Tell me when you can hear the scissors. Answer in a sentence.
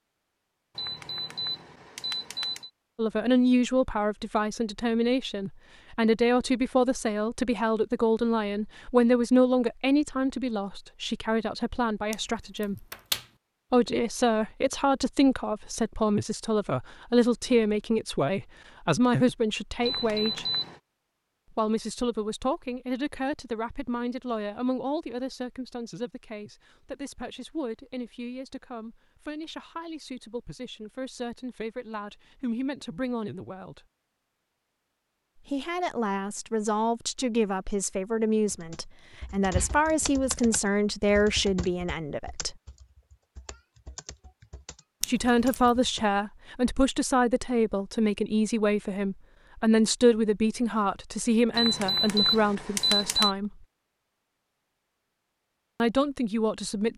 The scissors can be heard from 12.1 to 13.2 s and from 45.0 to 45.7 s.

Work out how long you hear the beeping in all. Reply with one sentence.
The beeping can be heard for 5 seconds in total.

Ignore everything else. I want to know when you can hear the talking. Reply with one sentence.
You can hear the talking from 3.0 to 12.8 s, from 13.7 to 20.4 s, from 21.6 to 33.8 s, from 35.5 to 42.5 s, from 45.0 to 53.5 s and from 55.8 to 56.9 s.